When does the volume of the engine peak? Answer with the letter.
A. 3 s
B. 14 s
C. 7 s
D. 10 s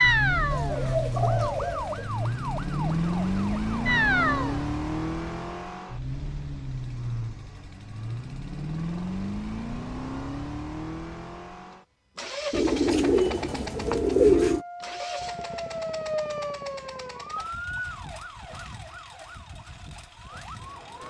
A.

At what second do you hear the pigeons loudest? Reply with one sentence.
The loudest moment of the pigeons is at 14 seconds.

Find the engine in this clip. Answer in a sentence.
The engine can be heard from 0.0 to 21.0 s.